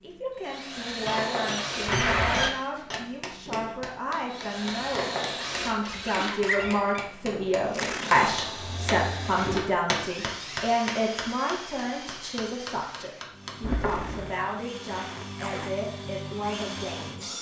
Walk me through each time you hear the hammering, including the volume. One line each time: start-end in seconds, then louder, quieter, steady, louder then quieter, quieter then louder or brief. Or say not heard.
2.9-13.6 louder then quieter.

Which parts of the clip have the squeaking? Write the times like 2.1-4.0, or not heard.
1.1-3.0, 5.8-7.0, 13.6-14.3.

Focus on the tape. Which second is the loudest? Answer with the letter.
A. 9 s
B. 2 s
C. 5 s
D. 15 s
B.